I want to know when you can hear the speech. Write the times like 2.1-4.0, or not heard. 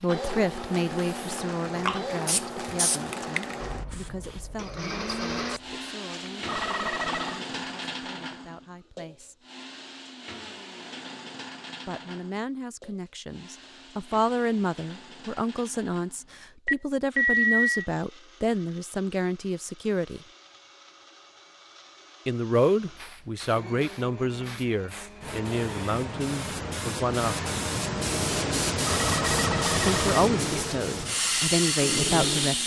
0.0-9.4, 11.8-20.2, 22.2-27.5, 29.9-32.6.